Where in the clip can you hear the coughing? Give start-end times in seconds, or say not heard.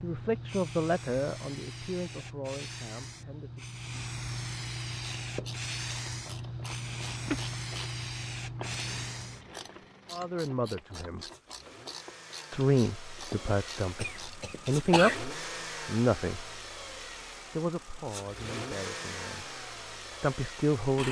6.7-7.4, 13.9-15.2.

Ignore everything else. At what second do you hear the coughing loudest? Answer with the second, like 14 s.
15 s.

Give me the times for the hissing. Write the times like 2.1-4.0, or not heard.
0.0-9.4.